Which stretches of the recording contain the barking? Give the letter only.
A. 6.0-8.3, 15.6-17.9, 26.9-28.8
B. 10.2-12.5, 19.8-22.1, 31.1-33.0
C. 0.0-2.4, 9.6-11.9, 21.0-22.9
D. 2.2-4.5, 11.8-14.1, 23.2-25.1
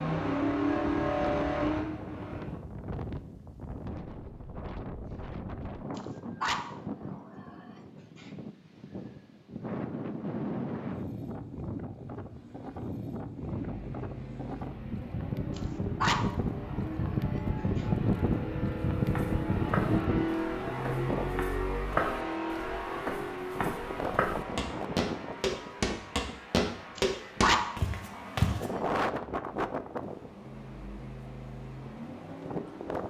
A.